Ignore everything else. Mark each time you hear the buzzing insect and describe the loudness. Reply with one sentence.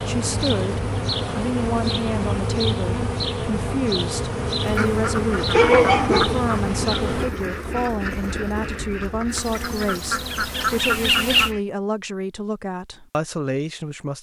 You can hear the buzzing insect from 0.0 to 7.3 s, getting louder; and briefly from 9.3 to 11.5 s.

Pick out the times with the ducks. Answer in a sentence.
You can hear the ducks from 4.6 to 11.6 s.